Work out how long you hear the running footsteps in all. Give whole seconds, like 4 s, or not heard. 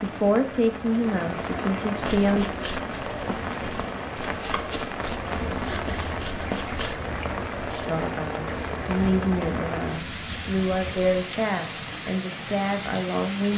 5 s.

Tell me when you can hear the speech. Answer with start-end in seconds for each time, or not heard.
0.0-2.5, 7.8-13.5.